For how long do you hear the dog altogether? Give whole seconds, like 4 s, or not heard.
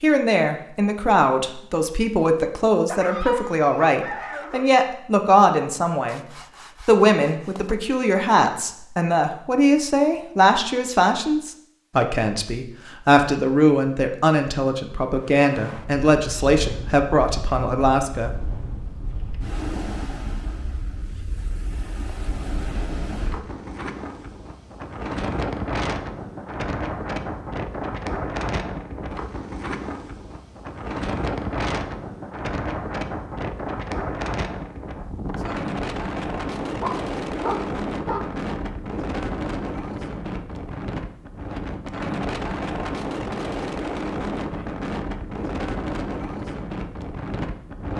3 s.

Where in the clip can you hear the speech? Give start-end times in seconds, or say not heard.
0.0-6.2, 6.8-18.4.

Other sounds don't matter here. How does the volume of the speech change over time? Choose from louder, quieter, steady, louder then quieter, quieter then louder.
steady.